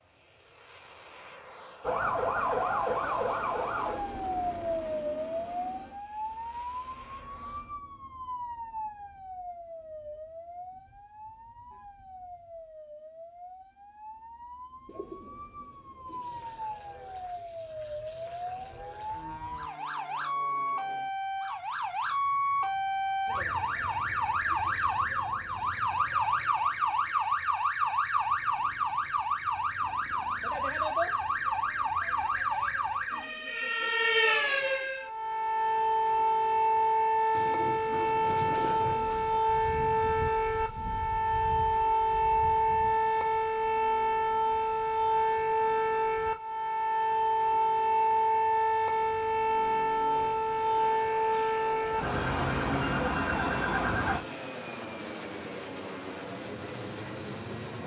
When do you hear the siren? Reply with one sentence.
You can hear the siren from 1.8 to 54.2 s.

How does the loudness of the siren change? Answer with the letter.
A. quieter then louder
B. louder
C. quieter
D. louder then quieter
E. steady
B.